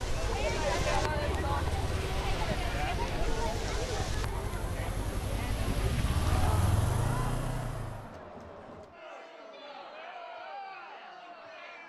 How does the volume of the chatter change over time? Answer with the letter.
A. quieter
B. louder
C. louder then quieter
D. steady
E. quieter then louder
A.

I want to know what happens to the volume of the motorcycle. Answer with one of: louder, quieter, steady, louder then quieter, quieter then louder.
louder.